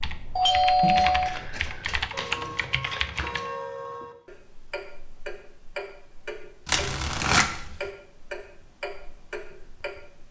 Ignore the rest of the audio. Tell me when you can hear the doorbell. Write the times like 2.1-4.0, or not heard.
0.3-1.6.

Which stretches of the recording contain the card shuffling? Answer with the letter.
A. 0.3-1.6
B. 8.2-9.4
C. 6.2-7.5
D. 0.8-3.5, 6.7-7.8
D.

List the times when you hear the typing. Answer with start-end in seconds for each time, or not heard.
0.0-3.5.